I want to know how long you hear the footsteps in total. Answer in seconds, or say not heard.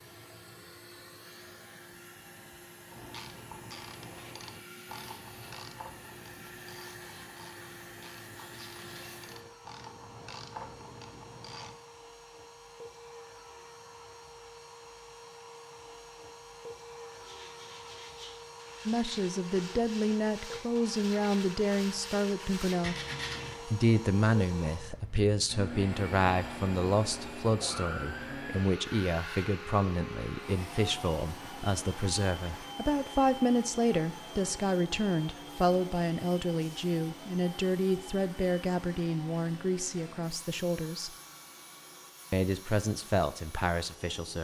not heard.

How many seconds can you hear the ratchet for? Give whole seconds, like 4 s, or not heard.
9 s.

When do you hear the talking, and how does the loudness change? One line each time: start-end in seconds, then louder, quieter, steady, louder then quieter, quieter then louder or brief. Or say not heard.
18.9-22.9 steady
23.6-41.1 steady
42.3-44.3 brief.